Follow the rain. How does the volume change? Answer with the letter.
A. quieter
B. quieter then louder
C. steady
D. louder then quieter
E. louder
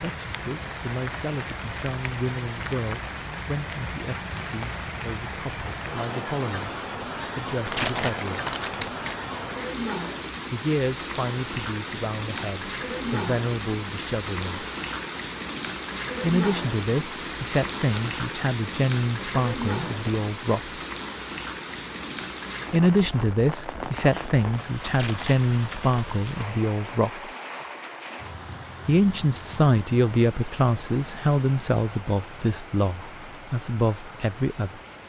A.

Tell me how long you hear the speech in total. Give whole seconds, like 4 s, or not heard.
27 s.